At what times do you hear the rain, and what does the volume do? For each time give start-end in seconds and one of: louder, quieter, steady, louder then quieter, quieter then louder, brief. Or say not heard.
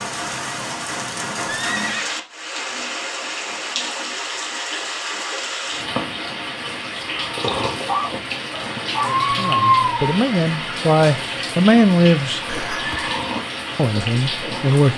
0.0-14.9 steady.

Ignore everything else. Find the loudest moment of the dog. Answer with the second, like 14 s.
10 s.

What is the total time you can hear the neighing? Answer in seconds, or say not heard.
2 s.